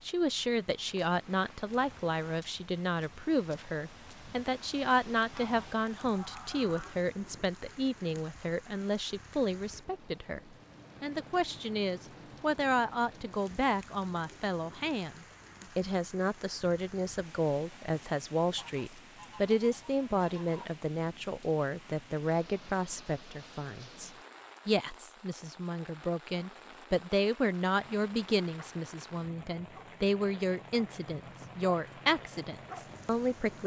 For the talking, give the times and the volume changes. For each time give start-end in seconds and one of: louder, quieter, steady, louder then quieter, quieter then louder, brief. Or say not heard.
0.0-10.4 steady
11.0-33.6 steady.